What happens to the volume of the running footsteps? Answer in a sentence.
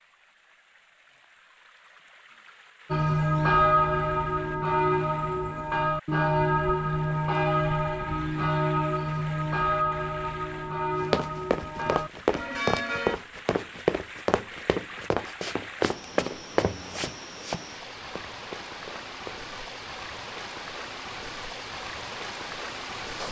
The volume of the running footsteps goes down.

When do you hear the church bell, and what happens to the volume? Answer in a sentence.
The church bell can be heard from 2.9 to 13.2 s, getting quieter.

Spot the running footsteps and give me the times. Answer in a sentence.
You can hear the running footsteps from 11.0 to 19.4 s.